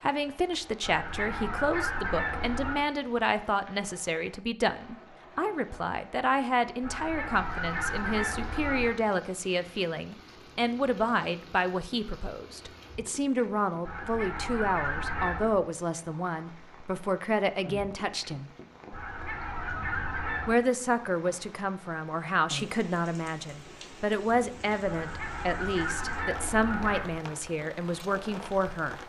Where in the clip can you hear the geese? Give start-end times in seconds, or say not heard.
0.8-2.9, 6.8-8.9, 13.8-15.6, 18.9-20.6, 24.9-27.2.